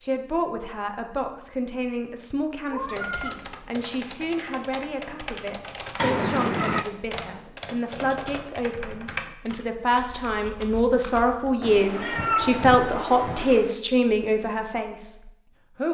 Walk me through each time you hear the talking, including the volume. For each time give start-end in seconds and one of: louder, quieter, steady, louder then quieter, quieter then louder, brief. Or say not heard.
0.0-15.9 louder.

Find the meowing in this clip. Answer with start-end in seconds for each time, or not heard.
2.7-3.4, 6.0-6.8, 11.6-13.8.